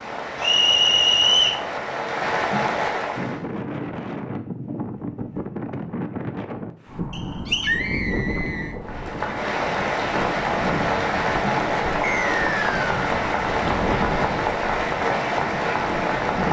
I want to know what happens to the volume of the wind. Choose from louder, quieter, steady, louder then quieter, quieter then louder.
steady.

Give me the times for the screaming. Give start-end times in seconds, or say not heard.
7.5-8.8.